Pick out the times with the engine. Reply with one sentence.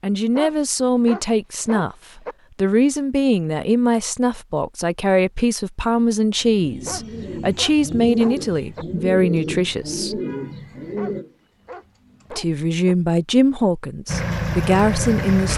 You can hear the engine from 14.1 to 15.5 s.